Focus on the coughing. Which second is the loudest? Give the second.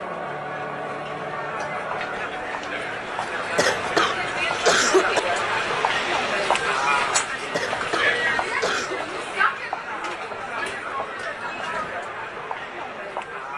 5 s.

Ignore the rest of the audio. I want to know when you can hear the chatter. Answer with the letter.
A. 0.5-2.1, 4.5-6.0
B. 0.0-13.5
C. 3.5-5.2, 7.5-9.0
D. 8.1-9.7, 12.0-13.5
B.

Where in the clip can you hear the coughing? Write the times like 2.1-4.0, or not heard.
3.5-5.2, 7.5-9.0.